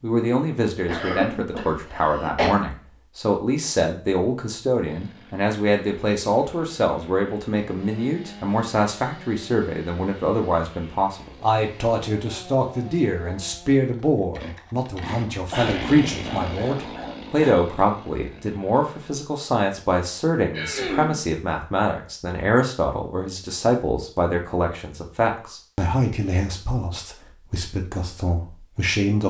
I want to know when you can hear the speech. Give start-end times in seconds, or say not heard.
0.0-29.2.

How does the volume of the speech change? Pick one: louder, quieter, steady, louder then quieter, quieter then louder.
steady.